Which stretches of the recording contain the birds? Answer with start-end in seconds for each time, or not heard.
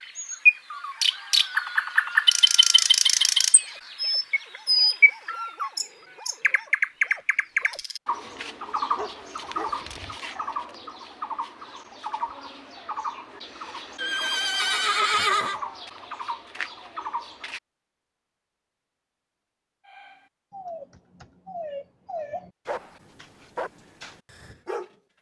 0.0-17.6.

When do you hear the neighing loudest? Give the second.
15 s.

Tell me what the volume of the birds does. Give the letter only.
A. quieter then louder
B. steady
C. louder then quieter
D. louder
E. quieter
E.